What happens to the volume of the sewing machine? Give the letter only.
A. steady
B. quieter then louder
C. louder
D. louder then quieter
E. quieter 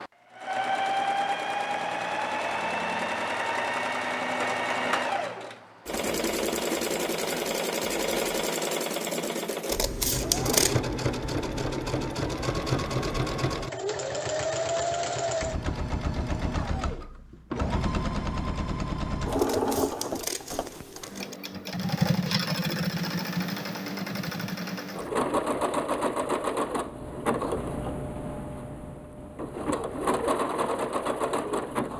A.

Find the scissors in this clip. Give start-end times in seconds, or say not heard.
9.7-10.8, 19.4-21.4.